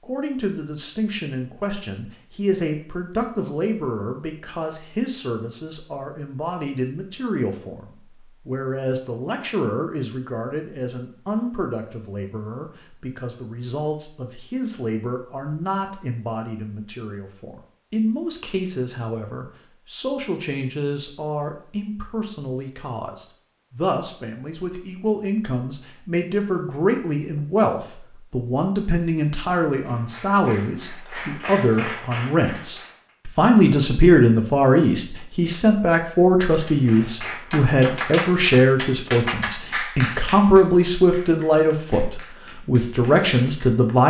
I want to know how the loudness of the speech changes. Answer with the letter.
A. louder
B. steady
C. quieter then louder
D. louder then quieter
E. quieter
A.